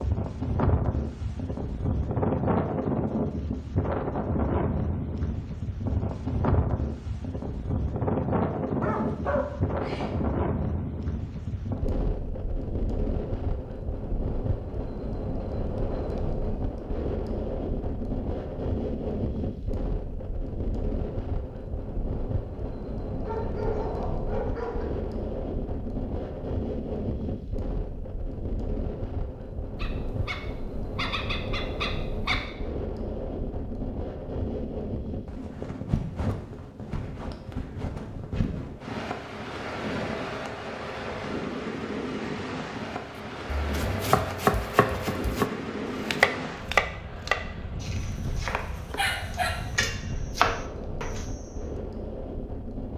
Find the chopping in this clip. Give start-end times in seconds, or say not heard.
43.5-51.4.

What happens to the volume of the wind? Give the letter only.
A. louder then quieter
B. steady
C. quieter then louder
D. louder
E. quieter
E.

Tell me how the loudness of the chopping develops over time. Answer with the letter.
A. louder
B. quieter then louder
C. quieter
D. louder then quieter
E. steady
B.